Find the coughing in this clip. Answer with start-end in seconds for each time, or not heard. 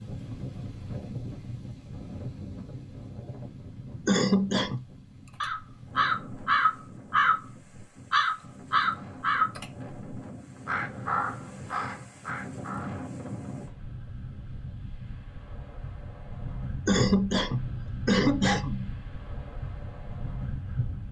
4.0-4.8, 16.9-18.9.